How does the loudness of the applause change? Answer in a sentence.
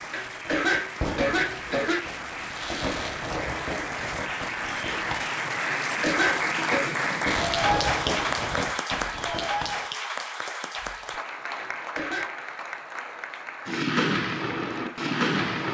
The loudness of the applause goes up, then down.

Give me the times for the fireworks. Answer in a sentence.
The fireworks can be heard from 0.0 to 5.3 s, from 7.2 to 9.8 s and from 13.7 to 15.6 s.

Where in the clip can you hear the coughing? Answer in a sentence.
You can hear the coughing from 0.1 to 2.0 s, from 5.7 to 7.0 s and from 11.6 to 12.3 s.